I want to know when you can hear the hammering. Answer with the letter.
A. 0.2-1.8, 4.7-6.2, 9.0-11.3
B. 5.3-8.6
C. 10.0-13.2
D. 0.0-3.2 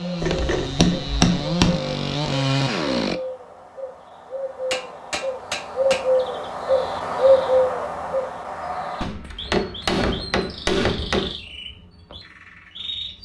A.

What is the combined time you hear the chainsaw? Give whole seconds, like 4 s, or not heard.
3 s.